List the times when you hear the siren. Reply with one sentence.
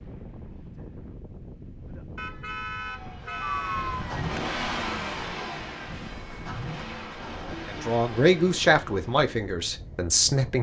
You can hear the siren from 2.8 to 4.3 s.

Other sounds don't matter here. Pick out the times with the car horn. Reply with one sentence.
You can hear the car horn from 2.1 to 4.0 s.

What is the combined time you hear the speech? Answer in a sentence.
The speech can be heard for 3 seconds in total.